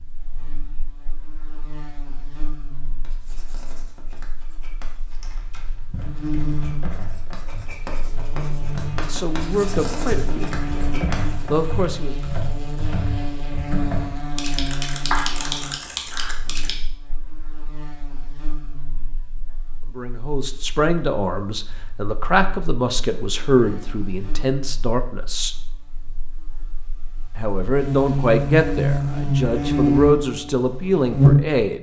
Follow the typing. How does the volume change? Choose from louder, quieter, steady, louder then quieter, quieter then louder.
louder.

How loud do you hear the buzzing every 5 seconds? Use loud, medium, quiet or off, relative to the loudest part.
quiet, quiet, quiet, quiet, quiet, medium, loud.